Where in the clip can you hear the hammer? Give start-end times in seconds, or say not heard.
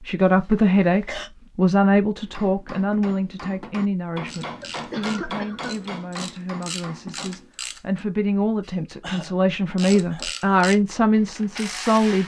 2.2-7.5.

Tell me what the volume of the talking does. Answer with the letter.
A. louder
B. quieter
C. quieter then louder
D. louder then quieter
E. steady
C.